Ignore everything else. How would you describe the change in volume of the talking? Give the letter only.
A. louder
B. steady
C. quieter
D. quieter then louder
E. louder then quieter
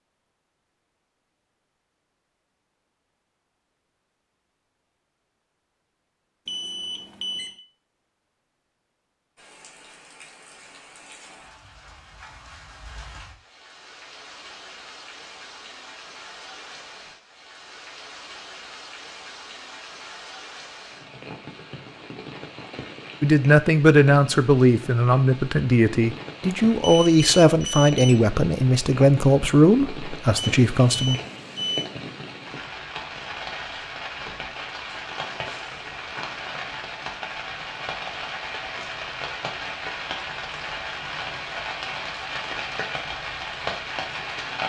B.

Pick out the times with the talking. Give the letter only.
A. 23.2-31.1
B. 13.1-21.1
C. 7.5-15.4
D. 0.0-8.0
A.